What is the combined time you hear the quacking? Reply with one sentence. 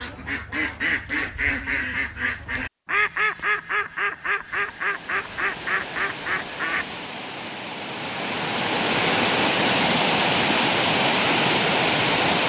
You can hear the quacking for 7 seconds altogether.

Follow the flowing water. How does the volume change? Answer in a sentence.
The loudness of the flowing water goes up.